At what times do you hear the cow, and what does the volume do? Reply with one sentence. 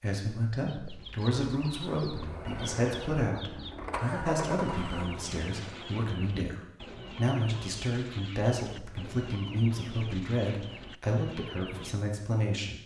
You can't hear the cow here.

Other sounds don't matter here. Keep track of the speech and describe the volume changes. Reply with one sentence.
The loudness of the speech stays about the same.